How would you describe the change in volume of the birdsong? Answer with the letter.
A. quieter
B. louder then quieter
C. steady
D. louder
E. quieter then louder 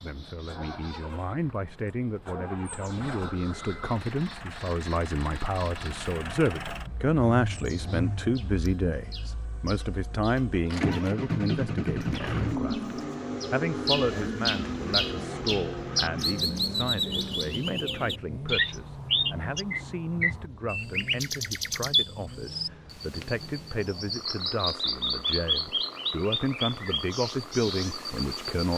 D.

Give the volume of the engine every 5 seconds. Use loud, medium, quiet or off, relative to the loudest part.
medium, medium, loud, medium, quiet, quiet.